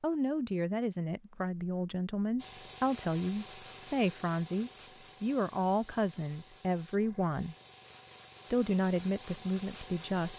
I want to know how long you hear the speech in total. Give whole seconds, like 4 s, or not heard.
9 s.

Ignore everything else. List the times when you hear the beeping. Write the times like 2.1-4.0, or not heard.
not heard.